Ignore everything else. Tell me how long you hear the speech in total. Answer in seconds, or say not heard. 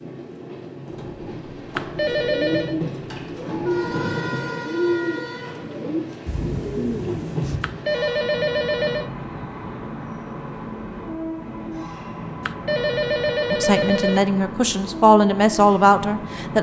3 s.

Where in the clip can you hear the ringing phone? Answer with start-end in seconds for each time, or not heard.
1.8-2.8, 7.6-9.1, 12.4-14.2.